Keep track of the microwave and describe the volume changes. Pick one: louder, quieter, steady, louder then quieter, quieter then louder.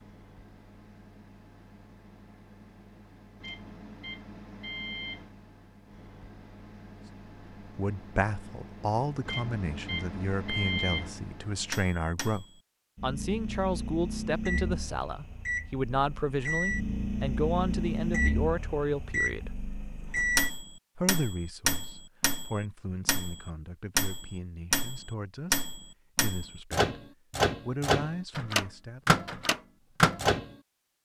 louder.